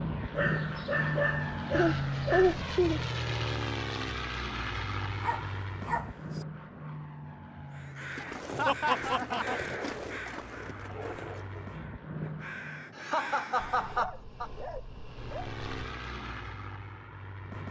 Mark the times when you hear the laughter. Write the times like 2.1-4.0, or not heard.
1.7-3.0, 8.6-9.6, 12.9-14.5.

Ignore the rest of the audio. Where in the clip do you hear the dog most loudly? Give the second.
1 s.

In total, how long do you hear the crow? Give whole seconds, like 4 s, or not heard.
6 s.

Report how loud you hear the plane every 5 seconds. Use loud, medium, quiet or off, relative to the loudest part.
loud, medium, medium, medium.